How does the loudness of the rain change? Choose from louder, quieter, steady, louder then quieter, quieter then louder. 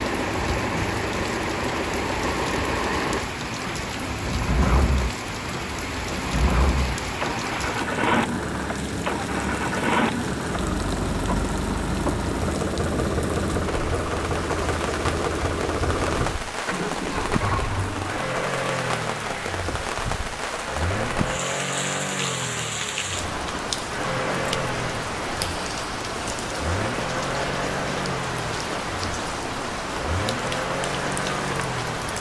steady.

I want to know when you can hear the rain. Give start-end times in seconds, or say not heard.
0.0-32.1.